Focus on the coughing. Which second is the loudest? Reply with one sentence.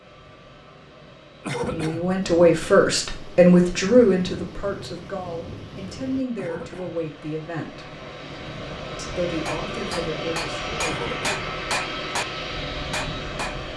The volume of the coughing peaks at 2 seconds.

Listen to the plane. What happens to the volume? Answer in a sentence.
The loudness of the plane goes up.